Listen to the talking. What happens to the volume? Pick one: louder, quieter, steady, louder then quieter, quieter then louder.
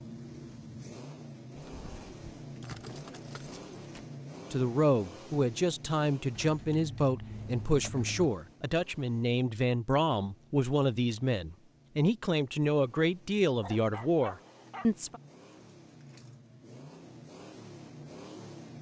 steady.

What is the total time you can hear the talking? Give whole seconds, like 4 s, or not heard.
11 s.